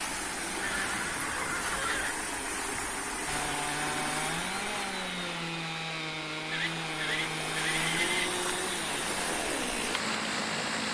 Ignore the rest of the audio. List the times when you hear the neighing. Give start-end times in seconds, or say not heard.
0.6-2.1, 6.5-8.3.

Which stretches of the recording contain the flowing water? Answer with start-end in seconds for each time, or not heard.
0.0-10.8.